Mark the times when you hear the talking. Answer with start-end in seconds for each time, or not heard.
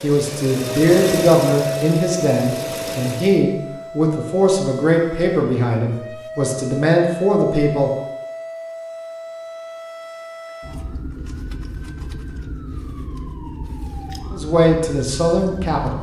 0.0-7.9, 14.3-15.9.